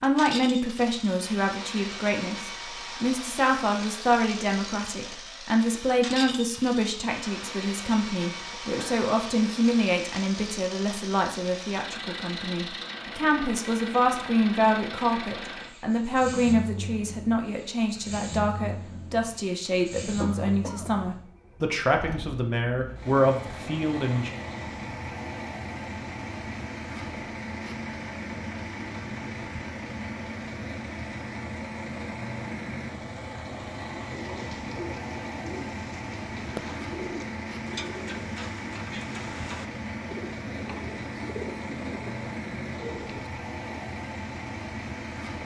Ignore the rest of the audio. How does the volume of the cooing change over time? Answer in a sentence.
The loudness of the cooing stays about the same.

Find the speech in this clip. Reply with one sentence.
The speech can be heard from 0.0 to 24.4 s.